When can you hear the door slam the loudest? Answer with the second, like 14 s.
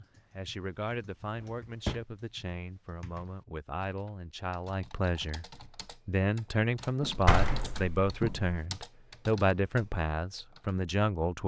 7 s.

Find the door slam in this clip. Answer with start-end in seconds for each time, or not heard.
1.4-2.0, 7.0-8.6.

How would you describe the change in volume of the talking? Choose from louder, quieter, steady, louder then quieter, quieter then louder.
louder.